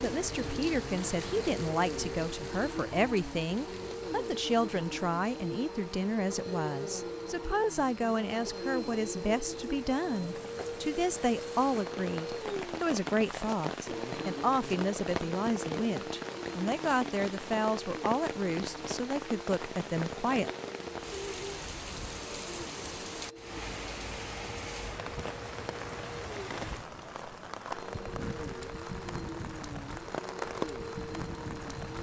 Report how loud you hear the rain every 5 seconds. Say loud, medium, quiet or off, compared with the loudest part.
medium, quiet, loud, loud, loud, loud, loud.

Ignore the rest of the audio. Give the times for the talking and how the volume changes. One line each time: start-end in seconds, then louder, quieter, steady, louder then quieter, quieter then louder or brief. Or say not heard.
0.0-20.5 steady.